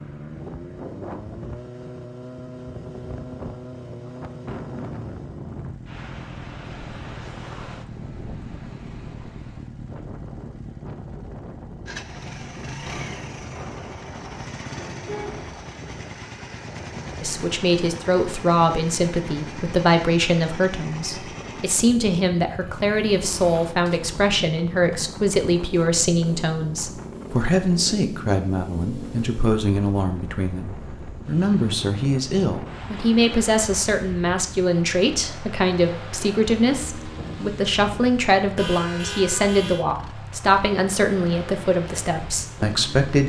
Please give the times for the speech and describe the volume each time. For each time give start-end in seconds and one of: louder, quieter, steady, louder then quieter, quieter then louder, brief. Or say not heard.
17.2-43.2 steady.